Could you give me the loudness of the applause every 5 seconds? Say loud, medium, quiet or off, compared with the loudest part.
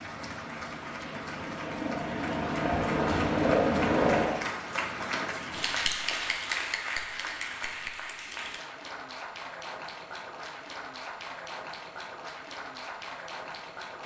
loud, loud, medium.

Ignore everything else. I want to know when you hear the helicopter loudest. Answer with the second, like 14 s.
4 s.